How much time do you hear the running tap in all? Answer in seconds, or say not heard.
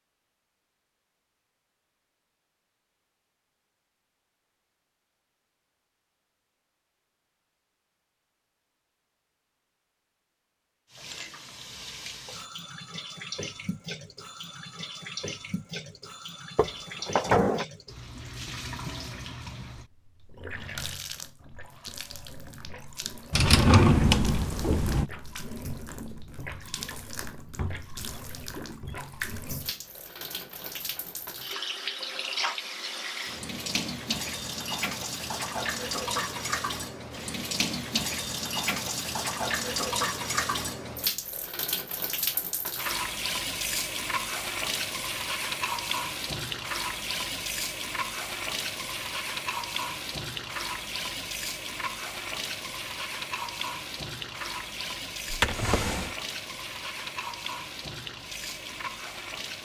49 s.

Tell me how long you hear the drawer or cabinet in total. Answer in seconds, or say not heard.
4 s.